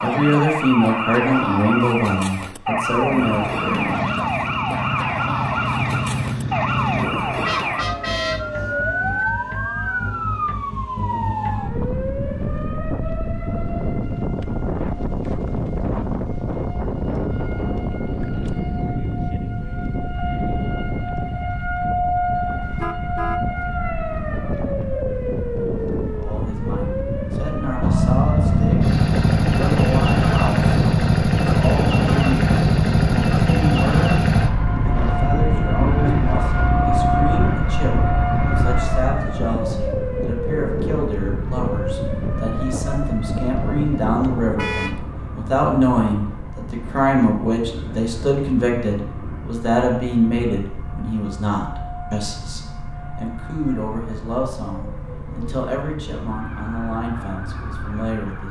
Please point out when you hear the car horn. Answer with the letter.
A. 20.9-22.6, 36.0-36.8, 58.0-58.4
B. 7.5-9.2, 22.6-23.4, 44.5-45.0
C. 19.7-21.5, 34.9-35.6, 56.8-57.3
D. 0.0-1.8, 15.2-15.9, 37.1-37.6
B.